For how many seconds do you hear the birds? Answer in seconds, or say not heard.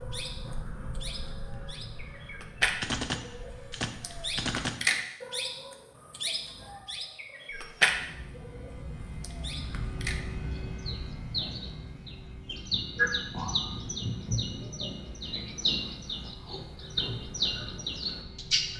19 s.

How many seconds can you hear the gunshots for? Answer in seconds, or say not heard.
2 s.